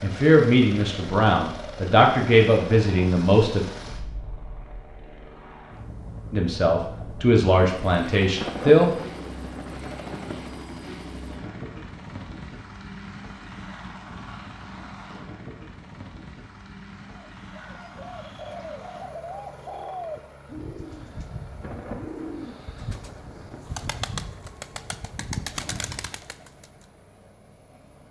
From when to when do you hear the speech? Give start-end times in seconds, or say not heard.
0.0-3.6, 6.3-8.9.